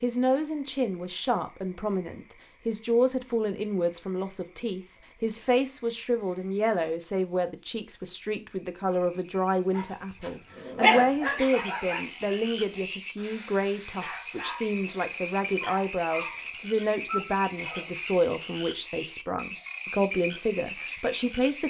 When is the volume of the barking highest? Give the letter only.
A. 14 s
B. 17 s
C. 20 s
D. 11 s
D.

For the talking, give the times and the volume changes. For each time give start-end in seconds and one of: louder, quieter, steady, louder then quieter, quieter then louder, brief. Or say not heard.
0.0-21.6 steady.